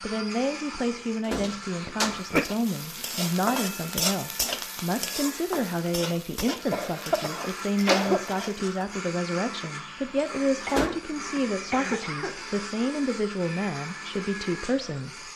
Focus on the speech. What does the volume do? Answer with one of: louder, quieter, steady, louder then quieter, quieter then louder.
steady.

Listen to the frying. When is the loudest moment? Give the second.
4 s.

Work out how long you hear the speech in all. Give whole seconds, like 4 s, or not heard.
15 s.